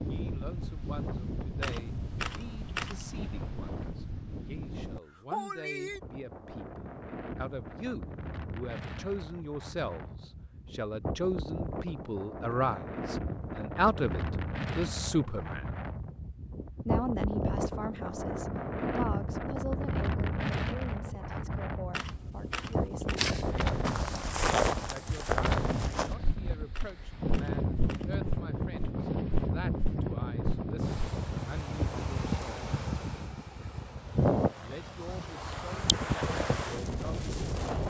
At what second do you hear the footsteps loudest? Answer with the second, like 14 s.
25 s.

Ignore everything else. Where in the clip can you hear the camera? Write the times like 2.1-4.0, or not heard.
1.6-3.0, 21.9-23.2, 26.7-28.1.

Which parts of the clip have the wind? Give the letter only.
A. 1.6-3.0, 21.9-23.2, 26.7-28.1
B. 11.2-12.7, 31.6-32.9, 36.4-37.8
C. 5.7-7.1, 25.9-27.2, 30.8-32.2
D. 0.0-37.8
D.